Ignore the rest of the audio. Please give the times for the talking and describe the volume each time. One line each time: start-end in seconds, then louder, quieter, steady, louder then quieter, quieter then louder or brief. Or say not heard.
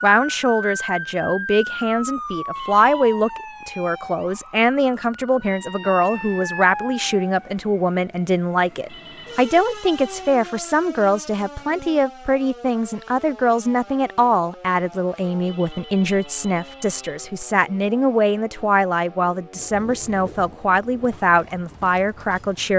0.0-22.7 steady.